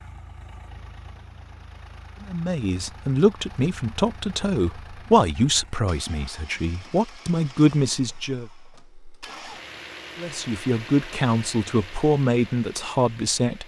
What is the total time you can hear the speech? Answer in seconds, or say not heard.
10 s.